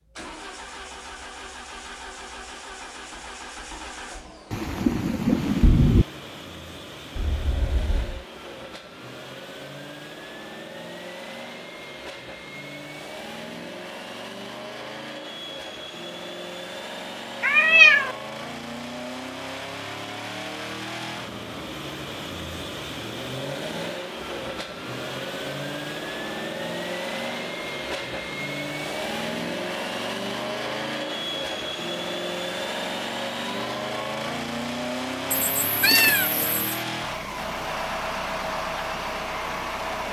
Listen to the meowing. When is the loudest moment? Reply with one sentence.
The loudest moment of the meowing is at 18 seconds.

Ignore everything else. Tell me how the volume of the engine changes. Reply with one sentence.
The loudness of the engine goes up.